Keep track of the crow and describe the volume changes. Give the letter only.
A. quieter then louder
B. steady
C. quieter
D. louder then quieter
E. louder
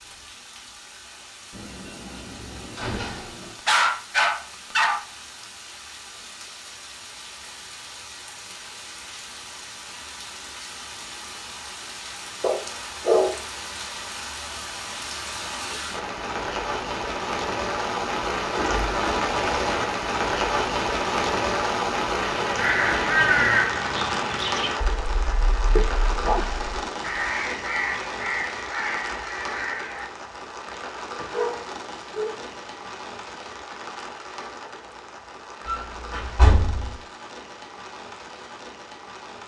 C.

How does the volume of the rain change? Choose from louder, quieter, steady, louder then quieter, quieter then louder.
louder then quieter.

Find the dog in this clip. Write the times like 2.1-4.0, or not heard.
3.6-5.0, 12.4-13.4, 25.8-26.9, 31.3-32.5.